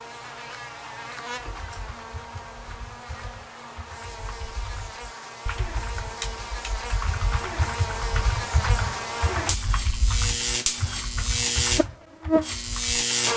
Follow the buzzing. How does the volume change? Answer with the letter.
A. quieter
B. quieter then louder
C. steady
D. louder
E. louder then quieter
D.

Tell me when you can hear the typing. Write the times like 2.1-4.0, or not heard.
1.5-13.0.